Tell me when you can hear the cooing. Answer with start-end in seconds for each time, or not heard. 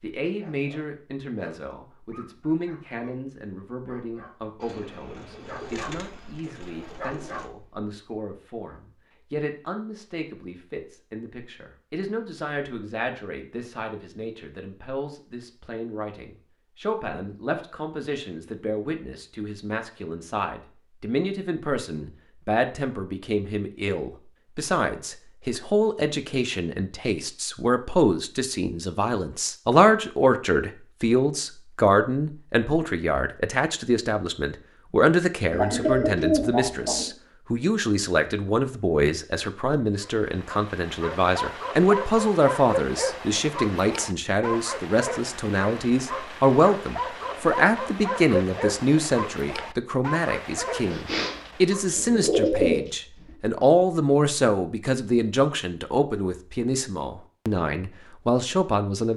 4.6-7.5, 35.5-37.1, 50.9-53.4.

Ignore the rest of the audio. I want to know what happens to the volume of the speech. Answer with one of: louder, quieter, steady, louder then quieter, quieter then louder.
louder.